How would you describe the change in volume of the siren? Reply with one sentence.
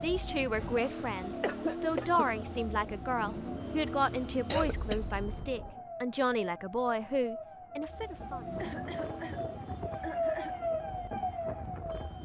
The loudness of the siren goes up.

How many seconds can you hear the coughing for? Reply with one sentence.
You can hear the coughing for 4 seconds altogether.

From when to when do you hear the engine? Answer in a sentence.
You can hear the engine from 0.0 to 5.6 s and from 7.8 to 12.2 s.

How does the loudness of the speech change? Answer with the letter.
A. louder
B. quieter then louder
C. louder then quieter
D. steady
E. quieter
D.